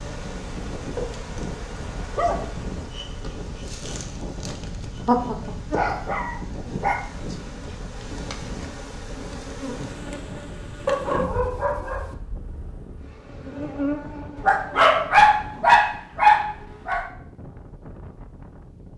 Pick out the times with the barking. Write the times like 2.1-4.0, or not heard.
0.9-2.6, 5.0-7.0, 10.8-12.1, 14.3-17.1.